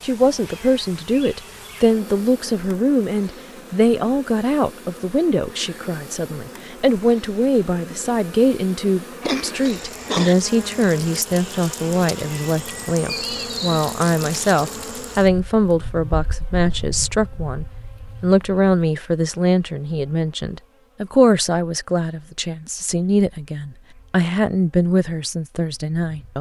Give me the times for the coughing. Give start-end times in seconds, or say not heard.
9.2-10.3.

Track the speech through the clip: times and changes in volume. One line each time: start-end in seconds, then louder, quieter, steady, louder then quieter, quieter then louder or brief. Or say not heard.
0.0-26.3 steady.